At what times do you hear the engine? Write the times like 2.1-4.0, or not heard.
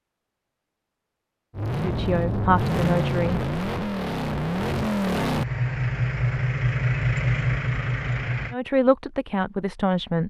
1.5-8.6.